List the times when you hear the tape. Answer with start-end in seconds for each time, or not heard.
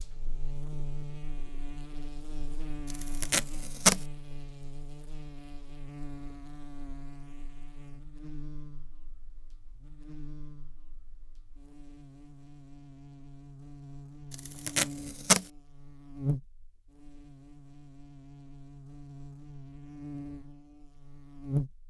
2.9-4.0, 14.3-15.4.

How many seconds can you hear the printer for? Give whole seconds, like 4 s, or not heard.
not heard.